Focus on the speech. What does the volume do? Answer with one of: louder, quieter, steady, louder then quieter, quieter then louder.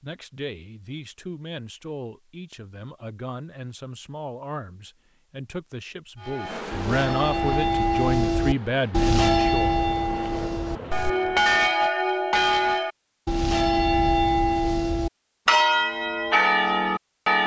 louder.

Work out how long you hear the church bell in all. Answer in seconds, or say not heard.
11 s.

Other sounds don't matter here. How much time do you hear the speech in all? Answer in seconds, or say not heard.
10 s.